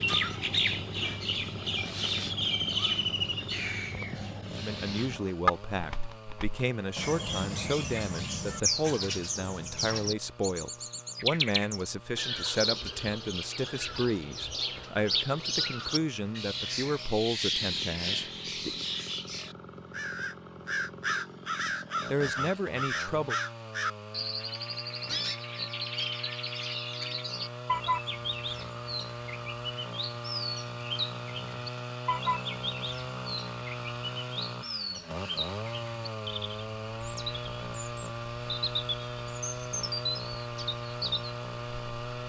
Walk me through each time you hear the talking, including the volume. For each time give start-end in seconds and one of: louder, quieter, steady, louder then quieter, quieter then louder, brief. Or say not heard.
4.5-18.9 steady
22.1-23.4 brief.